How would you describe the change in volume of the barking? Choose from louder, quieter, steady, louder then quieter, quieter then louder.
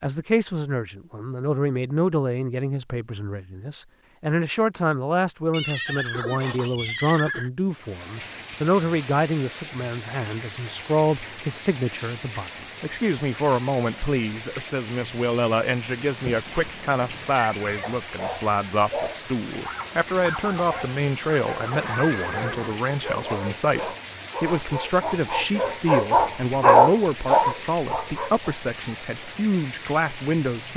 louder.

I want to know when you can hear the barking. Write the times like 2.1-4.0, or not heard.
17.6-28.6.